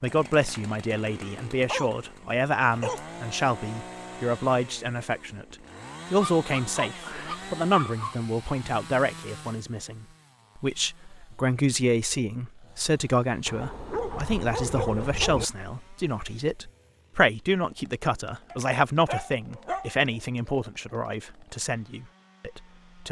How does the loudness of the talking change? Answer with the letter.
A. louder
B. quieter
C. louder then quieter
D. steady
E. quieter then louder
D.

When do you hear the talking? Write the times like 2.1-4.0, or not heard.
0.0-23.0.